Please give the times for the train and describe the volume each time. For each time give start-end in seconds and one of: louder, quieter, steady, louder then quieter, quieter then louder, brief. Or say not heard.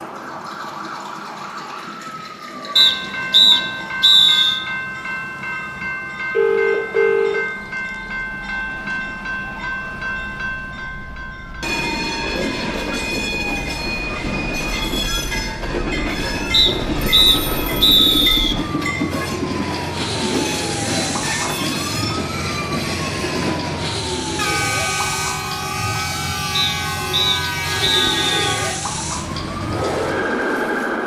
2.8-31.0 steady.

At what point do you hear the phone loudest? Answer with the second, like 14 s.
7 s.